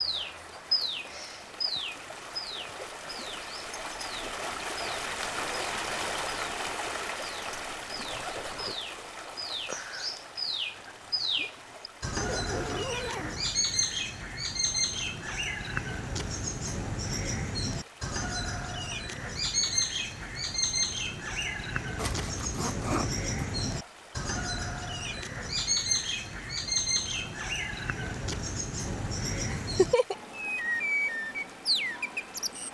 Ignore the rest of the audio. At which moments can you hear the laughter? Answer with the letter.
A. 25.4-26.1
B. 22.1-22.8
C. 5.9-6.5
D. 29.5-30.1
D.